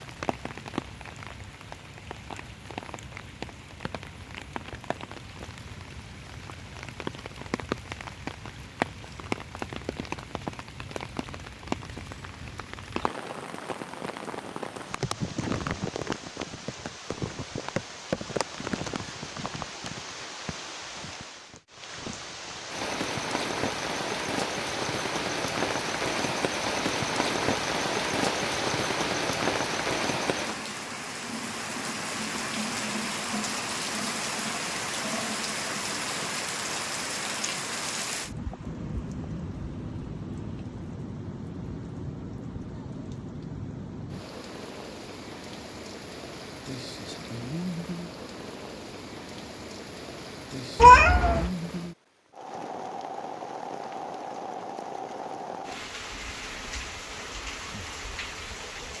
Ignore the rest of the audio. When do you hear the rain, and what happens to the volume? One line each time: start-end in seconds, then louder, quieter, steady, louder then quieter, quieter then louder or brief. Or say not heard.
0.0-58.9 louder then quieter.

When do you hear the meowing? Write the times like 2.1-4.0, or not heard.
50.8-51.5.